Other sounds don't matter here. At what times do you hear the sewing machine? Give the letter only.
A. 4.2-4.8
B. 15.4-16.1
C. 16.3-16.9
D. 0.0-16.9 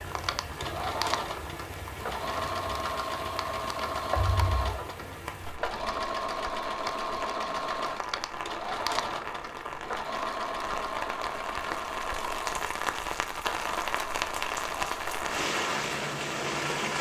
D.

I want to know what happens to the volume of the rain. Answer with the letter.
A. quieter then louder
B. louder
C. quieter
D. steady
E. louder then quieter
B.